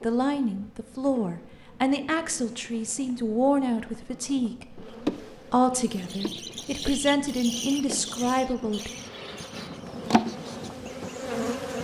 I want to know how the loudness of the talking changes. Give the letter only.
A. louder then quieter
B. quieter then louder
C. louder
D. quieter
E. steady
E.